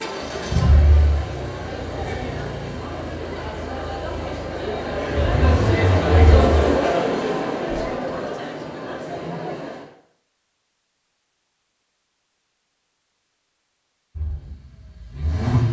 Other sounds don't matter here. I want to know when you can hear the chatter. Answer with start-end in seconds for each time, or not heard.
0.0-9.9.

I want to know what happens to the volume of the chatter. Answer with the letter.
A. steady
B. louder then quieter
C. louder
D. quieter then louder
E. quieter
B.